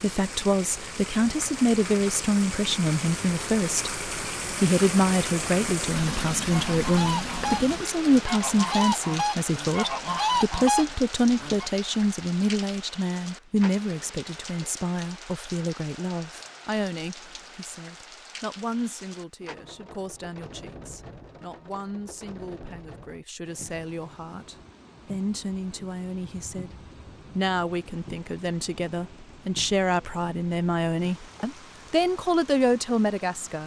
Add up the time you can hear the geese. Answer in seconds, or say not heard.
5 s.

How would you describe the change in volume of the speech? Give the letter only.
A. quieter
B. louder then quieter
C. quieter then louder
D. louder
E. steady
C.